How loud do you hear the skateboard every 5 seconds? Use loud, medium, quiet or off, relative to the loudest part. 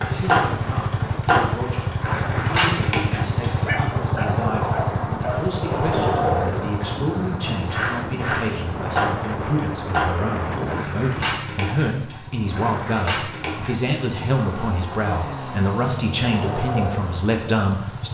loud, loud, medium, medium.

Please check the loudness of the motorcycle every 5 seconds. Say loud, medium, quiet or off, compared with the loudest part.
loud, medium, medium, medium.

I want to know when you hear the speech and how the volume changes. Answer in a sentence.
The speech can be heard from 0.0 to 18.1 s, getting louder.